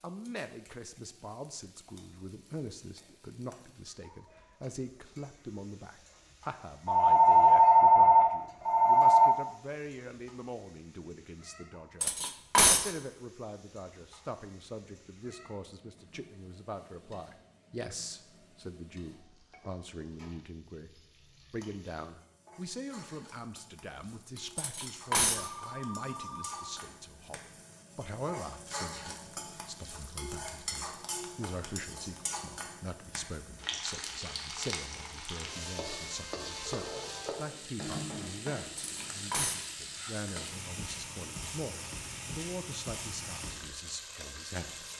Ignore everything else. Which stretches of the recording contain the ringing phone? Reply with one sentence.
The ringing phone can be heard from 6.8 to 9.3 s, from 25.4 to 27.0 s and from 36.6 to 37.4 s.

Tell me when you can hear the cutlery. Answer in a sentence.
You can hear the cutlery from 12.0 to 12.9 s, from 24.6 to 25.5 s and from 38.8 to 39.7 s.